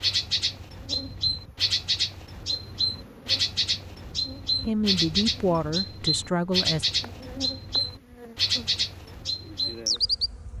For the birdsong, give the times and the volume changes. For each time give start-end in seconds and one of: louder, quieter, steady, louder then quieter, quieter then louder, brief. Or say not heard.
0.0-10.3 steady.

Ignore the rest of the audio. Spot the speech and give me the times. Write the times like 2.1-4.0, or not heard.
4.7-6.8.